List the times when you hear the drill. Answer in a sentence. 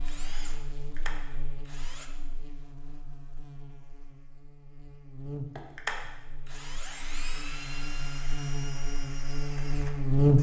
You can hear the drill from 0.0 to 2.1 s and from 5.5 to 10.3 s.